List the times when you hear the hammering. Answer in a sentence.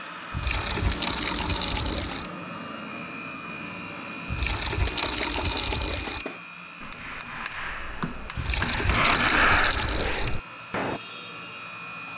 You can hear the hammering from 4.8 to 11.0 s.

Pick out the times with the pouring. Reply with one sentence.
You can hear the pouring from 0.3 to 2.3 s, from 4.2 to 6.2 s and from 8.3 to 10.4 s.